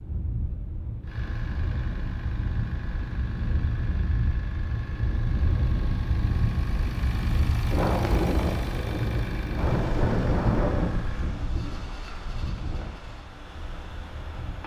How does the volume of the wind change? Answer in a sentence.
The loudness of the wind goes up, then down.